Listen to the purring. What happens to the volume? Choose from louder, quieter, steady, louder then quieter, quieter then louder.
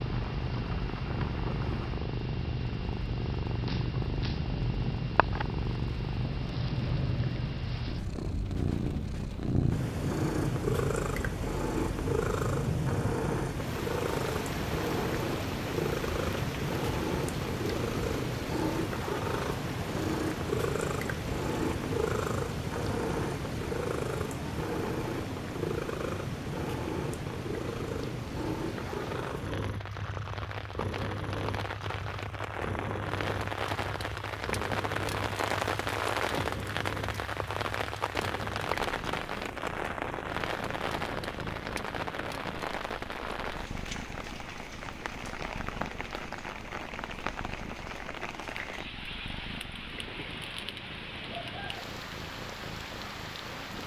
quieter.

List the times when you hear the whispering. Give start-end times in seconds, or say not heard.
not heard.